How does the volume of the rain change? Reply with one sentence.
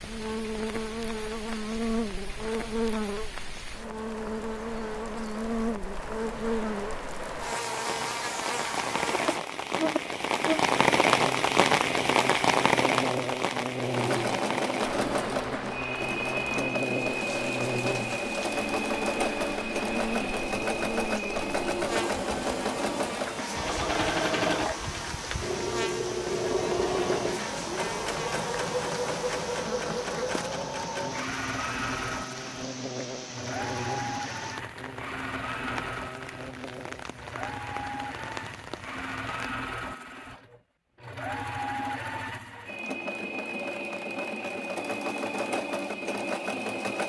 The loudness of the rain goes up, then down.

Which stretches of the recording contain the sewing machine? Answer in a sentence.
The sewing machine can be heard from 13.8 to 47.0 s.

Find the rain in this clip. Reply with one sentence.
The rain can be heard from 0.0 to 39.5 s.